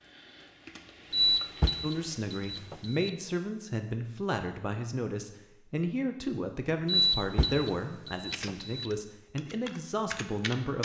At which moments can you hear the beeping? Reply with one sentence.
You can hear the beeping from 1.1 to 3.1 s and from 6.8 to 8.9 s.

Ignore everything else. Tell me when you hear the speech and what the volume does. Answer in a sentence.
The speech can be heard from 1.8 to 10.8 s, at a steady volume.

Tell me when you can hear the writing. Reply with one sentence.
The writing can't be heard in this clip.